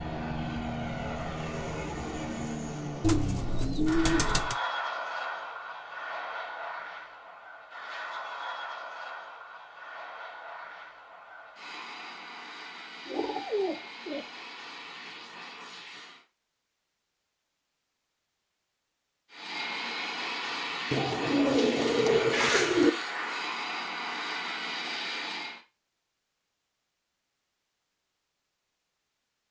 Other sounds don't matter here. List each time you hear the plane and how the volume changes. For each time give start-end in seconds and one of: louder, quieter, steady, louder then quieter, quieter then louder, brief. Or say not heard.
0.0-16.2 quieter
19.3-25.6 steady.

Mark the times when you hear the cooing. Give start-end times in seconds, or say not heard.
3.0-4.5, 13.1-14.2, 20.9-22.9.